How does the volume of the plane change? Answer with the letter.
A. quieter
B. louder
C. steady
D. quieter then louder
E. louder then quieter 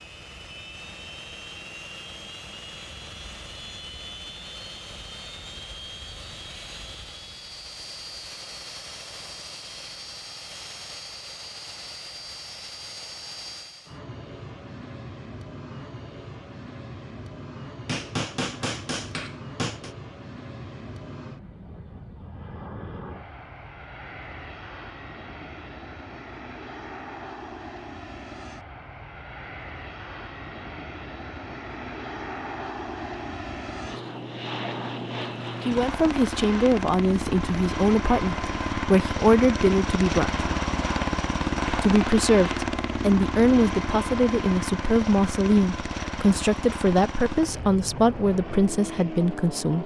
B.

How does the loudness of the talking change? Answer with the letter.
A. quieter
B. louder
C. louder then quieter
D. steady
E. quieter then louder
D.